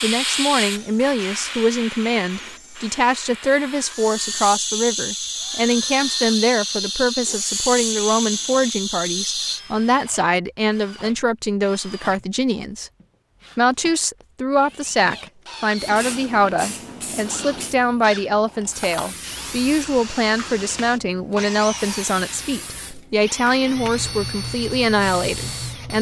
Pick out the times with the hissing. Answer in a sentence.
You can hear the hissing from 0.0 to 9.6 s and from 15.8 to 25.9 s.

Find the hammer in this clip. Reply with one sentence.
You can't hear the hammer here.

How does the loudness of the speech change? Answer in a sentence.
The loudness of the speech stays about the same.